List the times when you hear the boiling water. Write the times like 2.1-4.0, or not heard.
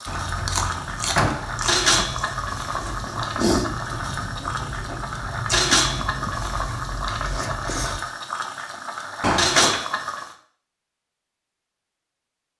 0.0-10.3.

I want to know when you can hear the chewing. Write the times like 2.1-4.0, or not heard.
0.1-8.0.